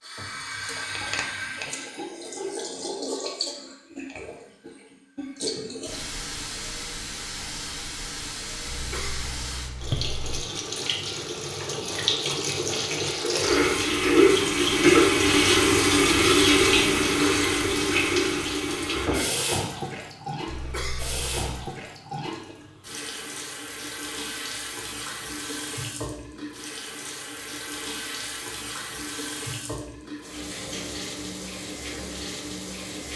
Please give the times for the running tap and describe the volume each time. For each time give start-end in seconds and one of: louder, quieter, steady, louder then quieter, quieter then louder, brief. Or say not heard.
0.0-33.1 louder then quieter.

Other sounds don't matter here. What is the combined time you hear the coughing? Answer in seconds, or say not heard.
3 s.